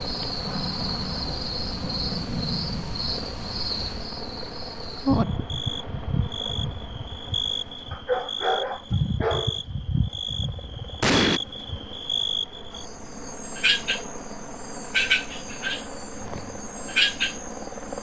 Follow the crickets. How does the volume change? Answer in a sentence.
The volume of the crickets stays about the same.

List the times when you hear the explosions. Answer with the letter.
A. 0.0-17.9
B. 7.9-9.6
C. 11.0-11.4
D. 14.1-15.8
C.